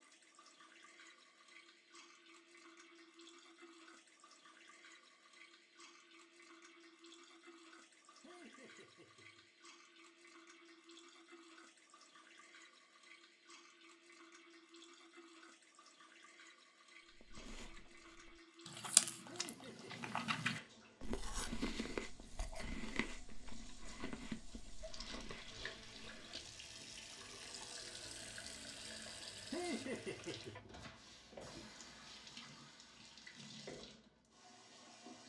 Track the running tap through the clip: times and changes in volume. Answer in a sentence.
The running tap can be heard from 0.0 to 35.2 s, getting louder.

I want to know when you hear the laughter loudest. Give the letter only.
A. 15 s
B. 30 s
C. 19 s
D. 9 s
B.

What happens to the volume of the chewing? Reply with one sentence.
The loudness of the chewing goes down.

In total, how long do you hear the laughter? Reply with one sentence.
The laughter can be heard for 3 seconds in total.